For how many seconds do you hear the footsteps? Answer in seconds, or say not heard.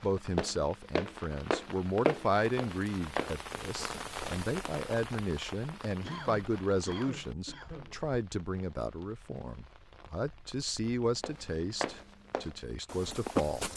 6 s.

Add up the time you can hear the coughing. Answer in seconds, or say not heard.
2 s.